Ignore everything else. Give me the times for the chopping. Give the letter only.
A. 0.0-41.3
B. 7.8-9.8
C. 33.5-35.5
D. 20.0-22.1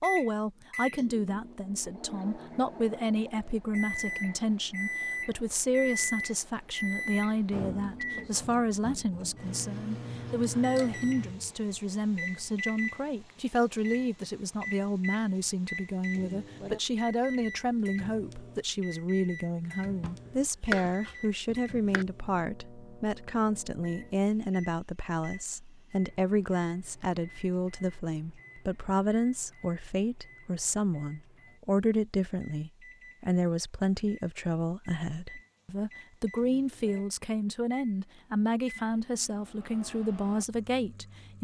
D.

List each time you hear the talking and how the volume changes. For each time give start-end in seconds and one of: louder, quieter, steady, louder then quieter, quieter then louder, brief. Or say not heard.
0.0-41.3 steady.